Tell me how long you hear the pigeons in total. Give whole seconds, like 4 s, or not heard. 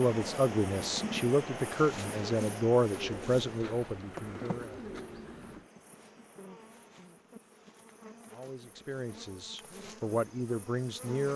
3 s.